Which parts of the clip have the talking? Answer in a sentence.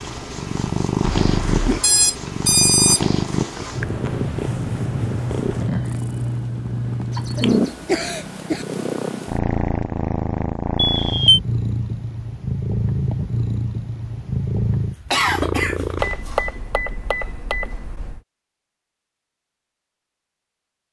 You can't hear the talking here.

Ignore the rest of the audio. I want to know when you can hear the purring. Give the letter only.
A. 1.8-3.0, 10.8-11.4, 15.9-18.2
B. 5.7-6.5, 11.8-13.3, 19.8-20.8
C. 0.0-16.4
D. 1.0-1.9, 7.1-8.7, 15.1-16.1
C.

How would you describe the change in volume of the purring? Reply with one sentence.
The volume of the purring stays about the same.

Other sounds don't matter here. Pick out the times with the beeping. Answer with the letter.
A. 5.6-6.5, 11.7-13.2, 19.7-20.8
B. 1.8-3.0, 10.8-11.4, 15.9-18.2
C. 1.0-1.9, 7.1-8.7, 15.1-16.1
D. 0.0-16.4
B.